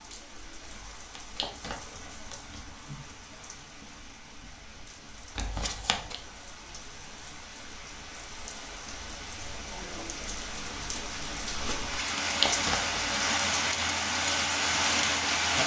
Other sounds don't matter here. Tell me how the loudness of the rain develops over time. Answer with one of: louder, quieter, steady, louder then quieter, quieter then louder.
louder.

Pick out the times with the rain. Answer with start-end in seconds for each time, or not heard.
0.0-15.6.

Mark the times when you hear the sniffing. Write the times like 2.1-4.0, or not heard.
not heard.